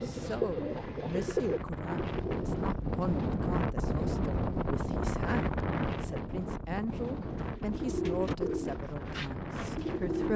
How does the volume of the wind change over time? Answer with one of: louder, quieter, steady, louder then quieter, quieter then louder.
louder then quieter.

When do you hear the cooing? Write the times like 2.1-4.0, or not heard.
0.0-3.0, 6.8-10.3.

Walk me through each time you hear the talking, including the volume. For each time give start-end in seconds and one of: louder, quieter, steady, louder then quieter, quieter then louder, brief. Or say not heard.
0.0-10.3 steady.